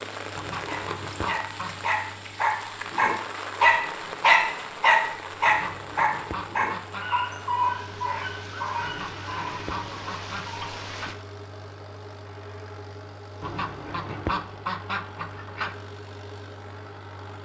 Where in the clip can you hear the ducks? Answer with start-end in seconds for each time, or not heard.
0.3-1.9, 5.5-7.1, 8.8-11.2, 13.4-15.8.